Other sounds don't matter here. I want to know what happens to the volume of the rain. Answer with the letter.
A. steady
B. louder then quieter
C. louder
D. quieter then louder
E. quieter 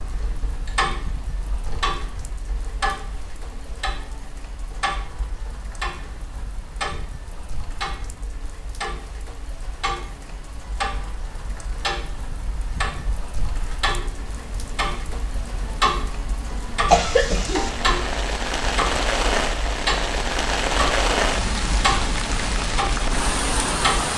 C.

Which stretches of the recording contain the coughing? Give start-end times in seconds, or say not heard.
16.9-17.7.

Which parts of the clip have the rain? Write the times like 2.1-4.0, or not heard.
0.0-24.1.